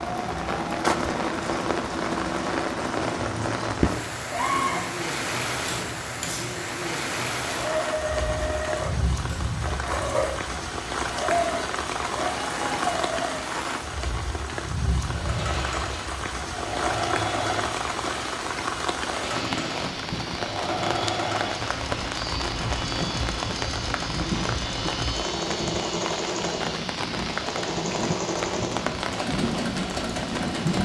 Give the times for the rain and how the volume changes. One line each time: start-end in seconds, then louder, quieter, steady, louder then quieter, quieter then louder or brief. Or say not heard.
0.0-30.7 steady.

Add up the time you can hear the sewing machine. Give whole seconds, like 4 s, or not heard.
29 s.